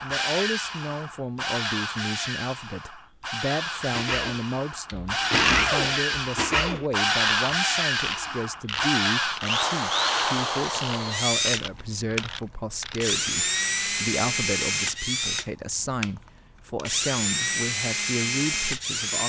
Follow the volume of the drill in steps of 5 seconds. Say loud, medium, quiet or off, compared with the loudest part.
medium, loud, loud, loud.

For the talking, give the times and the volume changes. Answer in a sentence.
You can hear the talking from 0.0 to 19.2 s, at a steady volume.